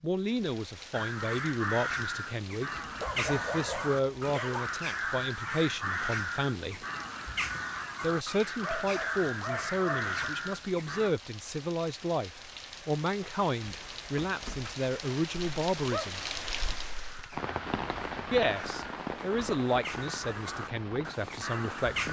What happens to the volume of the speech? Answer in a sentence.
The loudness of the speech stays about the same.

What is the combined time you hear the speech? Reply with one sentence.
You can hear the speech for 19 seconds altogether.